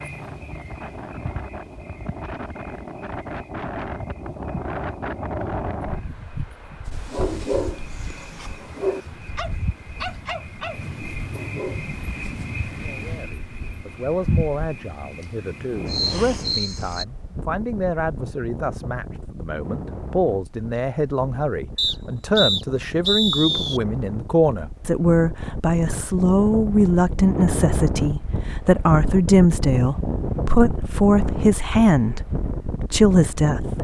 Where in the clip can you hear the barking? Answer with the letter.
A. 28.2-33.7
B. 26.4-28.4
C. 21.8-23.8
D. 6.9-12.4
D.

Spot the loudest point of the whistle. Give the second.
23 s.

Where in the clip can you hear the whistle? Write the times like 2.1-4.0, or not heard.
21.8-23.8.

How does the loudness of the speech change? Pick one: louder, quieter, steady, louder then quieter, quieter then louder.
louder.